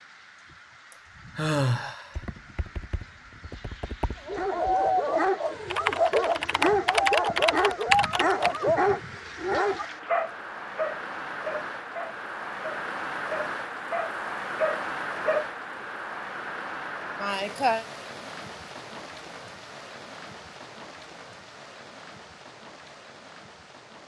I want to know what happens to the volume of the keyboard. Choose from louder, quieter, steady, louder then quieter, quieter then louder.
louder.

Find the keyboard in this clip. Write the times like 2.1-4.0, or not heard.
2.1-8.7.